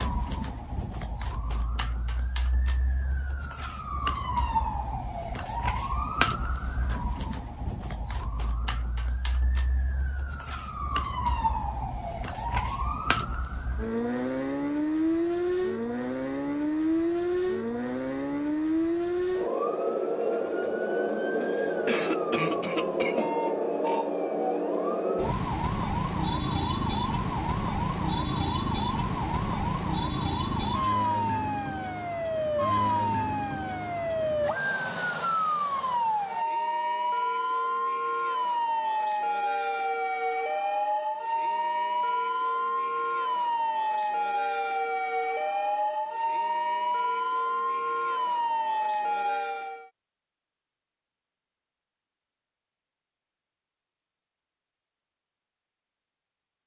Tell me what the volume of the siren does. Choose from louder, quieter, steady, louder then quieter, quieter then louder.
louder.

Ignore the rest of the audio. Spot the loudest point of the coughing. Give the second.
22 s.